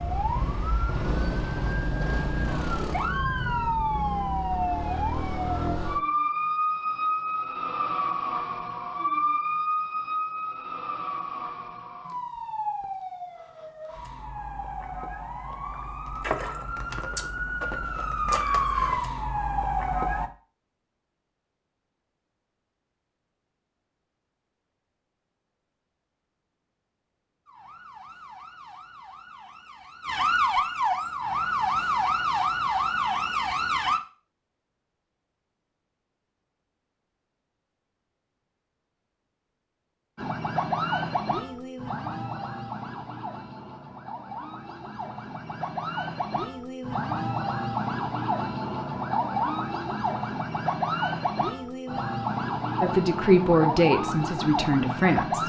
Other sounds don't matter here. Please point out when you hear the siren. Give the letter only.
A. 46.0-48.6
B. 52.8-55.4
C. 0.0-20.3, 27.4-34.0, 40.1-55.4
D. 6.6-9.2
C.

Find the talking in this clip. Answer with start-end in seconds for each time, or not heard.
52.8-55.4.